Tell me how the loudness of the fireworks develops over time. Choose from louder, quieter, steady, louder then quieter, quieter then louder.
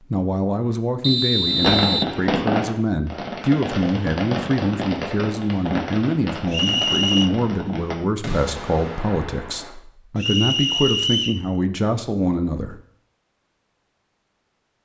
quieter.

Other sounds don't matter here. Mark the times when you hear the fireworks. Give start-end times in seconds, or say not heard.
1.4-9.8.